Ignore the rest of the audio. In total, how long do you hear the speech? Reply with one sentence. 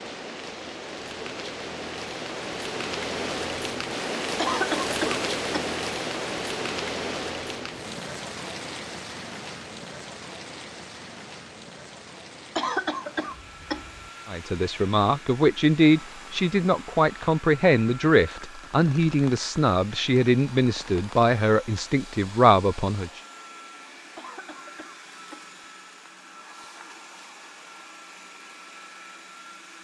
You can hear the speech for 9 seconds altogether.